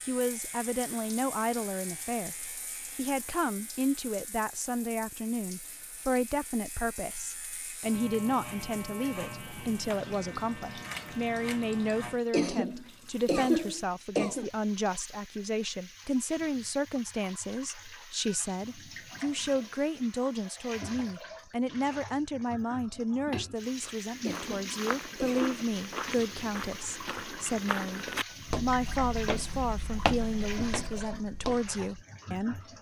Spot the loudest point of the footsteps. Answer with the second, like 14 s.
30 s.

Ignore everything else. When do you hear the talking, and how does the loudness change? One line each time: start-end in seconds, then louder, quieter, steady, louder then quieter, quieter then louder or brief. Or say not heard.
0.1-32.7 steady.